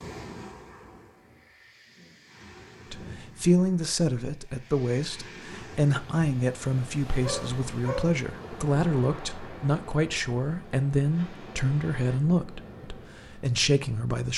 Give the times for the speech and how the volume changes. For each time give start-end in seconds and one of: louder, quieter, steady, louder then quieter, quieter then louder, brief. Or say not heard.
2.9-14.3 steady.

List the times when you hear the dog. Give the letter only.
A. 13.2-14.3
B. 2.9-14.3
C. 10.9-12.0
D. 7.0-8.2
D.